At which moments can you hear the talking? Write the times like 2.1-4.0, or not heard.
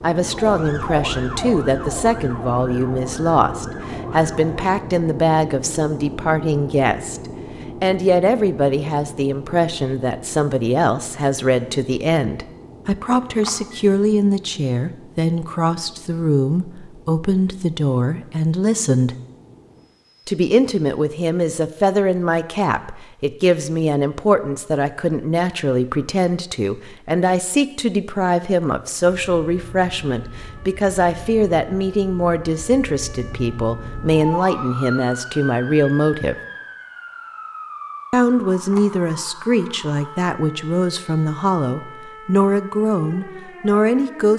0.0-7.2, 7.8-19.1, 20.2-36.4, 38.1-44.3.